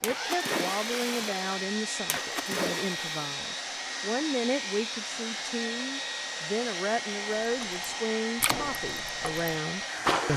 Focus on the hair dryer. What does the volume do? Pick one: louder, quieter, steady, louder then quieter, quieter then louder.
steady.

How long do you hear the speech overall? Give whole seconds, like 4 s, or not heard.
10 s.